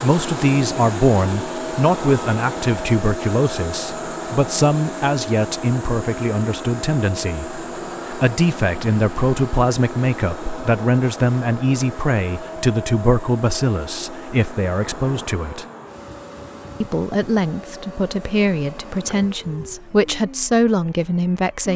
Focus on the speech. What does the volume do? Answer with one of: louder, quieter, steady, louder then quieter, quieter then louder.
steady.